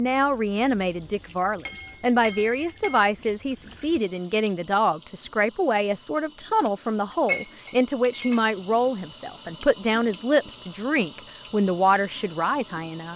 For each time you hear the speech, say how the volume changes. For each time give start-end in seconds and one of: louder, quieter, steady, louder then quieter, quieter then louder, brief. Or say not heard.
0.0-13.1 steady.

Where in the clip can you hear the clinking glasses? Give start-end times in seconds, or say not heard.
1.6-3.1, 7.2-8.4.